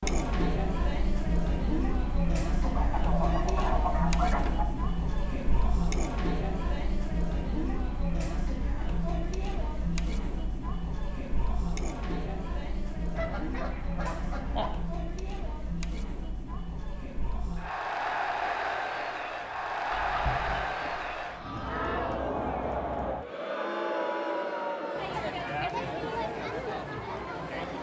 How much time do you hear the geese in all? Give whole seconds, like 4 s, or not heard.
6 s.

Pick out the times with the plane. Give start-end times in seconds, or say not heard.
not heard.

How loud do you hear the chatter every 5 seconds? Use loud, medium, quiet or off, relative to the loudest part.
loud, loud, medium, loud, loud, loud.